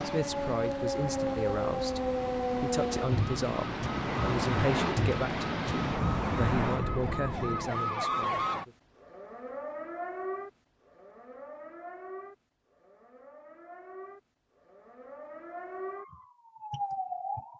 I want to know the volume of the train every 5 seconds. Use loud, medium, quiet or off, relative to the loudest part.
loud, loud, off, off.